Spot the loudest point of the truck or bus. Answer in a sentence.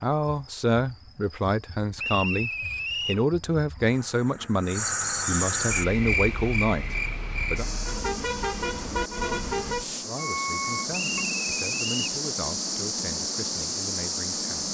The loudest moment of the truck or bus is at 9 seconds.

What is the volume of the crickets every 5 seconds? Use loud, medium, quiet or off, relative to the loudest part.
medium, loud, loud.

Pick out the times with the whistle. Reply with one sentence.
The whistle can be heard from 1.9 to 3.2 s and from 10.9 to 12.2 s.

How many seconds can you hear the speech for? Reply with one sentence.
You can hear the speech for 12 seconds altogether.